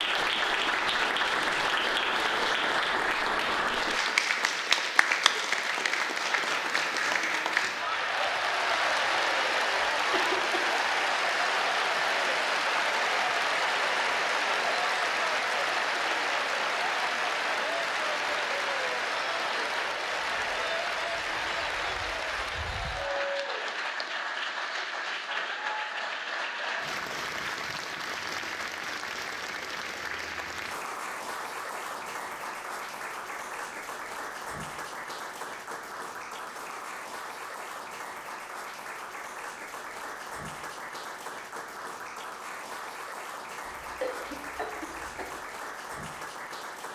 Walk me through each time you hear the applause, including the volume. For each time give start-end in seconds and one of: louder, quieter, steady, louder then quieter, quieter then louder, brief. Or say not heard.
0.0-46.8 quieter.